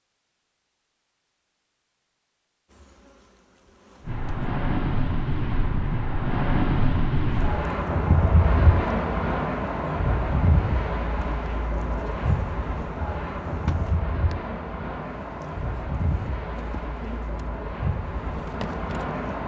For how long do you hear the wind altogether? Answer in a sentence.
You can hear the wind for 15 seconds altogether.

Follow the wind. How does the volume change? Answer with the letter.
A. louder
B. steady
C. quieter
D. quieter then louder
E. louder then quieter
C.